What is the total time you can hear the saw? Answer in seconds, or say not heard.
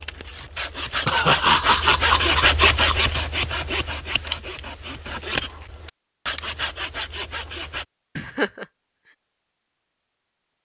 8 s.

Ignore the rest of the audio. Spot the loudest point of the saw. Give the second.
3 s.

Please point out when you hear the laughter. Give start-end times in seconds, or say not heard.
1.1-3.0, 8.2-8.7.